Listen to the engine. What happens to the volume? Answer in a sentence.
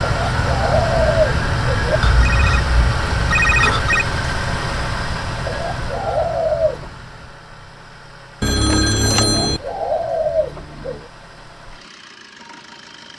The loudness of the engine goes down.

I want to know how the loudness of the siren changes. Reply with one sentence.
The volume of the siren goes down.